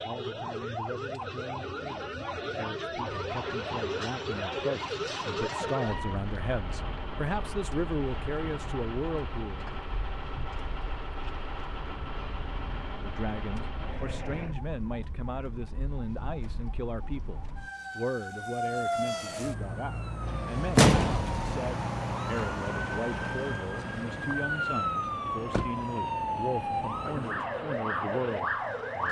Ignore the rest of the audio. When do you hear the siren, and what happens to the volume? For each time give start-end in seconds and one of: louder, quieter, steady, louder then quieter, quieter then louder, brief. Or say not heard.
0.0-29.0 quieter then louder.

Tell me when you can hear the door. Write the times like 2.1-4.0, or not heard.
20.8-21.5.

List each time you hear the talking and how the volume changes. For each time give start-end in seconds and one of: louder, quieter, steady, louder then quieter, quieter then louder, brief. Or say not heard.
0.0-9.7 louder
13.0-29.0 steady.